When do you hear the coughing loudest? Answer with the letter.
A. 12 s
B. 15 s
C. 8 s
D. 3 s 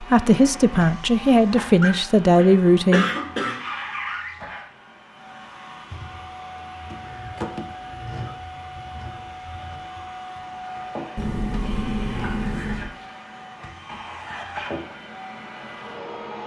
D.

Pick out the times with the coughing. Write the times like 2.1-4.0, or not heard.
1.8-3.6.